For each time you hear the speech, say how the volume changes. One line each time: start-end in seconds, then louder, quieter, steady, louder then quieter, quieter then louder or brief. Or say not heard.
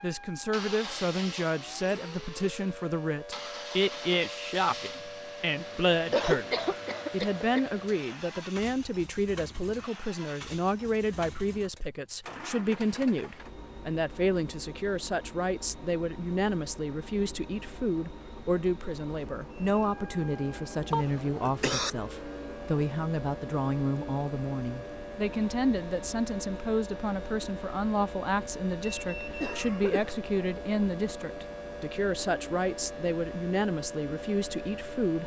0.0-35.2 steady.